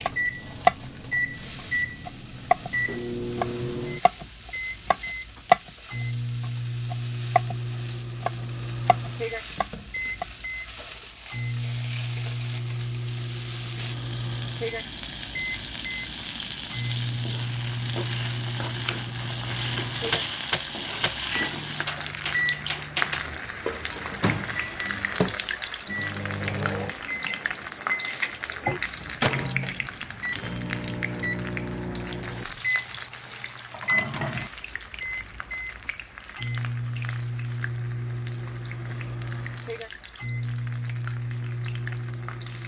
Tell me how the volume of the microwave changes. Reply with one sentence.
The loudness of the microwave stays about the same.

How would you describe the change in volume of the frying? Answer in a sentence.
The volume of the frying goes up, then down.